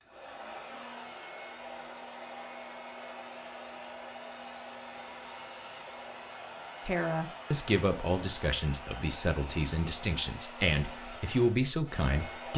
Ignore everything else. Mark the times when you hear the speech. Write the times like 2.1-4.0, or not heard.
6.8-12.5.